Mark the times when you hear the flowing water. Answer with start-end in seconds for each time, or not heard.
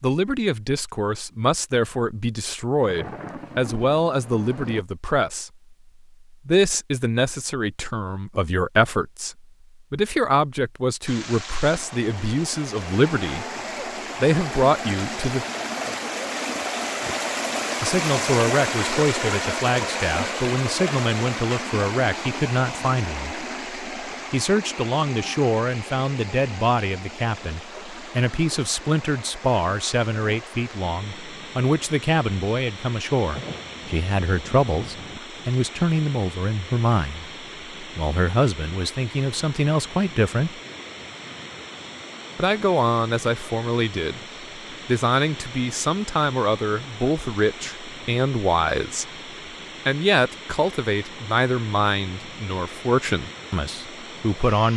11.1-54.7.